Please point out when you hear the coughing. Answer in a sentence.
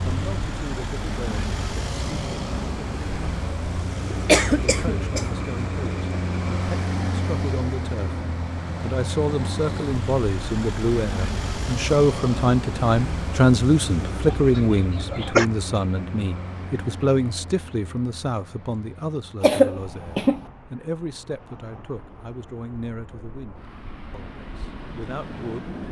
You can hear the coughing from 4.1 to 5.2 s, from 14.2 to 15.4 s and from 19.4 to 20.4 s.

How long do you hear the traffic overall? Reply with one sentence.
You can hear the traffic for 26 seconds altogether.